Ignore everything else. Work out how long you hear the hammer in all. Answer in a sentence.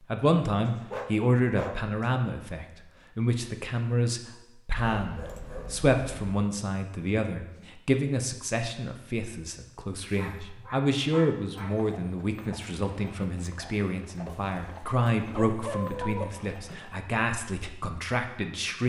The hammer can't be heard in this clip.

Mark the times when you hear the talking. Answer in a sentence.
The talking can be heard from 0.0 to 18.8 s.